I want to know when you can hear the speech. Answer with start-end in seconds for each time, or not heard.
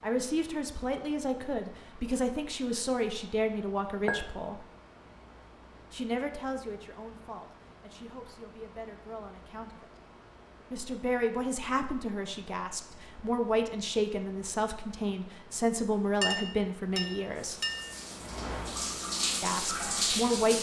0.0-4.7, 5.9-9.9, 10.7-17.6, 19.4-20.5.